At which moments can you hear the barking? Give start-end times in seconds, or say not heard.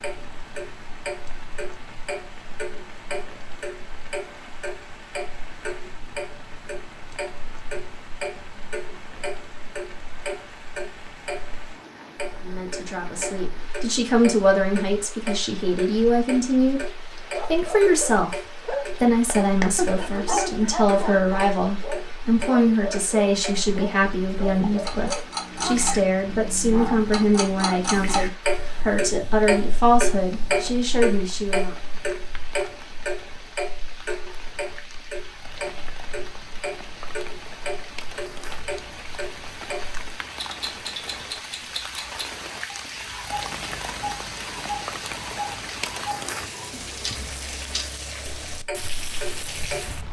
17.2-27.8.